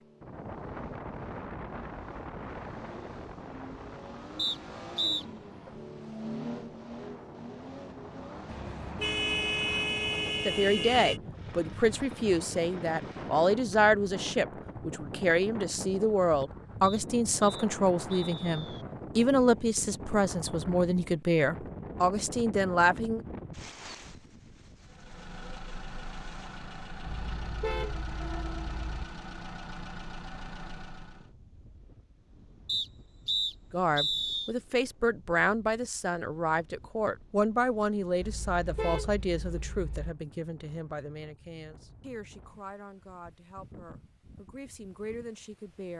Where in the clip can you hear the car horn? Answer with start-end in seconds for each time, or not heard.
8.4-11.2, 27.1-29.1, 38.2-40.1.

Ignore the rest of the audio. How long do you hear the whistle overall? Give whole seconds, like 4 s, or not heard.
5 s.